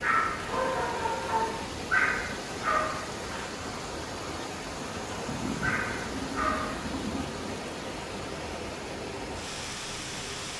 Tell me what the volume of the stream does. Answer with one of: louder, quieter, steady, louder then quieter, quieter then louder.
steady.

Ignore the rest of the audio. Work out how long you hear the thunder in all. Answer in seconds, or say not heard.
3 s.